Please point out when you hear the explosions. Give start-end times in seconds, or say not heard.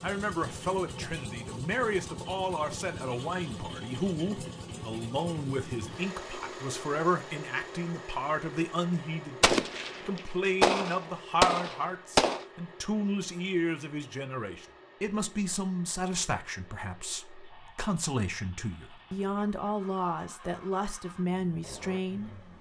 9.4-12.4.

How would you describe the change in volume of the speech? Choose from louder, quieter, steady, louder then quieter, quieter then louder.
steady.